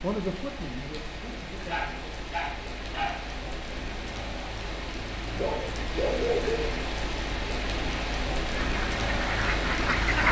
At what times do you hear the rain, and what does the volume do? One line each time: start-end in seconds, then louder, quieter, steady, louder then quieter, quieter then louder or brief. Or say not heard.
0.0-10.2 louder.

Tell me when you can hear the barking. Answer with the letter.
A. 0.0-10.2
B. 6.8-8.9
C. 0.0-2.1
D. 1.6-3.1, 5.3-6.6
D.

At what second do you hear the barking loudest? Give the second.
6 s.